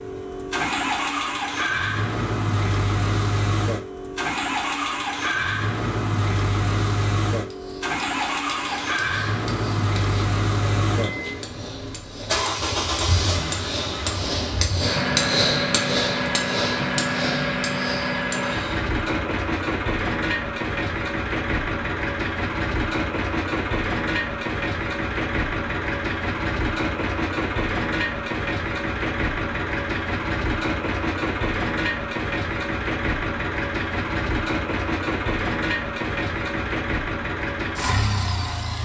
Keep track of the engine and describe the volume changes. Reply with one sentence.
The volume of the engine stays about the same.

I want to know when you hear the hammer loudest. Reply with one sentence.
The volume of the hammer peaks at 15 seconds.